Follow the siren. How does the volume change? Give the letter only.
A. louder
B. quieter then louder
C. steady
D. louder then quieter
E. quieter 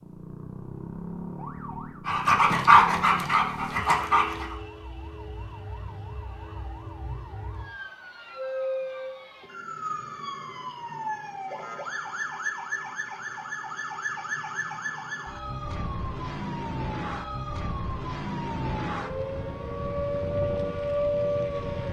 A.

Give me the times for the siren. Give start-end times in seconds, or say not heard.
0.0-21.8.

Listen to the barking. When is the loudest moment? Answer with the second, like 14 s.
3 s.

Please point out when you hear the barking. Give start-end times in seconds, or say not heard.
2.0-4.5.